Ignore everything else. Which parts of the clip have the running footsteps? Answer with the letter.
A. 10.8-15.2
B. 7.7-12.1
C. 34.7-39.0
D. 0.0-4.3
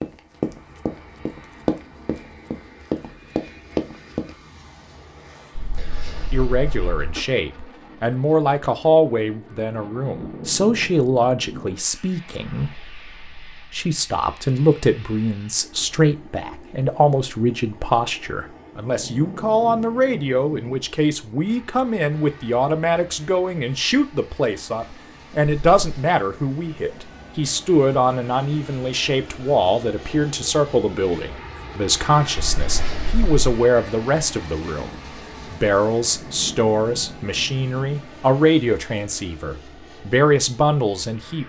D.